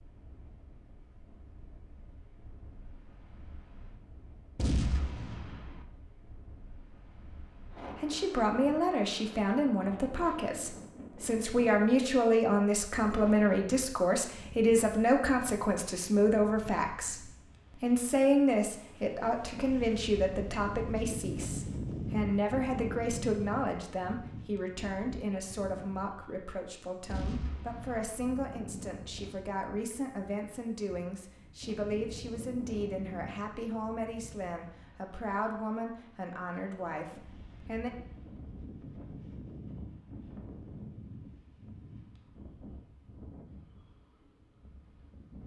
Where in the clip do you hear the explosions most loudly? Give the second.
5 s.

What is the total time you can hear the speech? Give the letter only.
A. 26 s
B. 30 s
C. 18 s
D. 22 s
B.